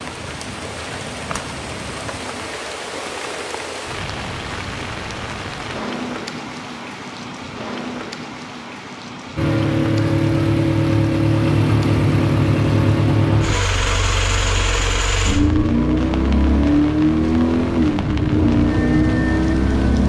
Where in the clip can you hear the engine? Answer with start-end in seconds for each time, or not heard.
9.3-20.0.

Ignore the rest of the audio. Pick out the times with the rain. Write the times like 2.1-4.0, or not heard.
0.0-20.0.